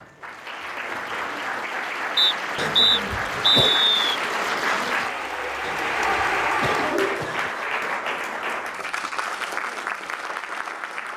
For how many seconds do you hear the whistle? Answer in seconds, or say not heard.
2 s.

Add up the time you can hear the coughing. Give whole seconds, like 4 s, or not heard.
3 s.